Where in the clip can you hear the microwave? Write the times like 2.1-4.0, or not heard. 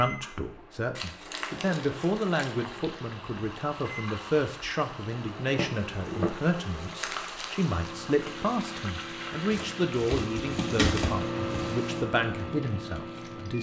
0.0-13.5.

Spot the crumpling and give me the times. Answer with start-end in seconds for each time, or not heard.
0.9-2.7, 7.0-7.5, 9.5-12.1.